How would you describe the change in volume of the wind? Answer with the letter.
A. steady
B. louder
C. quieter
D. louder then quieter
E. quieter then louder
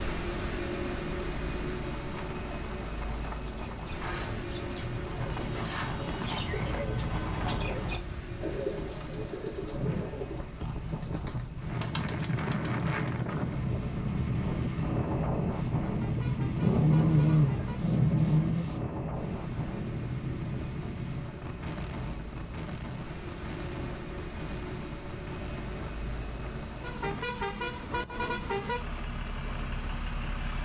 D.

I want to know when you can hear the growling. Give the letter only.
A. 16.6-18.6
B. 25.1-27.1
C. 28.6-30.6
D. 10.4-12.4
A.